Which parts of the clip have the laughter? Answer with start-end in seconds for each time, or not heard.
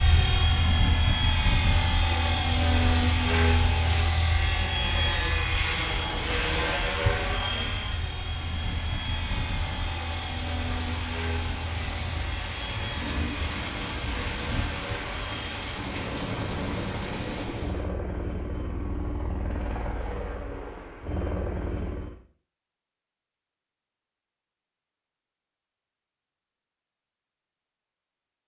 not heard.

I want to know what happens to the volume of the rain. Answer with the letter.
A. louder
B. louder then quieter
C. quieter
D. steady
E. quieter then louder
A.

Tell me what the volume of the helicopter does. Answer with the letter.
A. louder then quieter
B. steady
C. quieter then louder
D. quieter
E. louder
D.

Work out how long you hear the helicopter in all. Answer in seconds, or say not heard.
22 s.